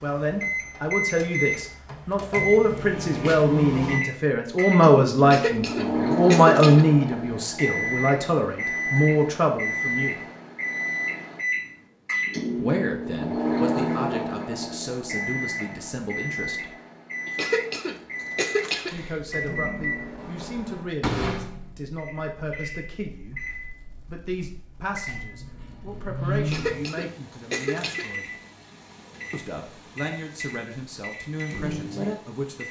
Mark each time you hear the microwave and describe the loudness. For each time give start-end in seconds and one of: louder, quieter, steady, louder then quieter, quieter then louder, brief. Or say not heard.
0.0-32.6 quieter.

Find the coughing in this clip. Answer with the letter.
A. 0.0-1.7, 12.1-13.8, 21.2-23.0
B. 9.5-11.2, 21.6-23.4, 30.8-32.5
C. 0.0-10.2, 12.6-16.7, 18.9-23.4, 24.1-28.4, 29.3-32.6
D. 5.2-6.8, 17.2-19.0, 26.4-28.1
D.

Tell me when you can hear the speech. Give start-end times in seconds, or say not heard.
0.0-10.2, 12.6-16.7, 18.9-23.4, 24.1-28.4, 29.3-32.6.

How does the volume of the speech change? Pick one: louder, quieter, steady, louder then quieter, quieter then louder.
quieter.